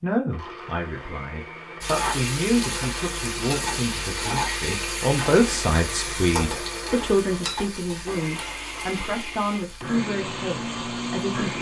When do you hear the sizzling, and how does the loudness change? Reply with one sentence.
The sizzling can be heard from 1.8 to 11.5 s, getting quieter.